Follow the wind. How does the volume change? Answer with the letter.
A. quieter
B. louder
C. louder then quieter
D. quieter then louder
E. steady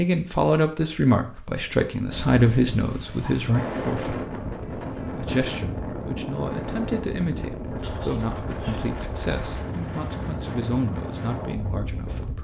E.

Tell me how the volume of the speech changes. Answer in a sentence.
The loudness of the speech goes down.